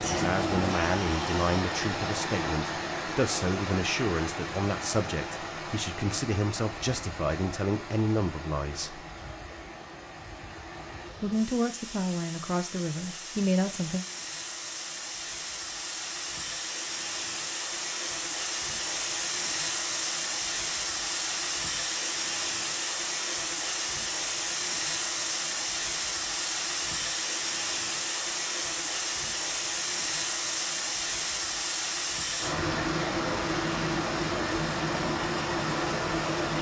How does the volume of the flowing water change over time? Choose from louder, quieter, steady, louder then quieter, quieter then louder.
quieter then louder.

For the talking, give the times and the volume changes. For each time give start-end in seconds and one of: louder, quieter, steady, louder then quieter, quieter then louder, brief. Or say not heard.
0.0-9.1 steady
11.2-14.1 brief.